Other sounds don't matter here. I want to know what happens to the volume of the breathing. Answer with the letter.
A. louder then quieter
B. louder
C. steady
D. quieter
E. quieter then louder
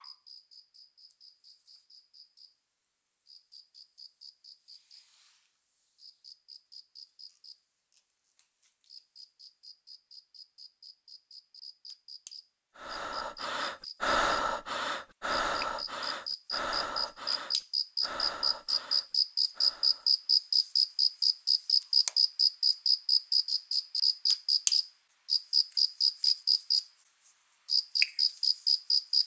D.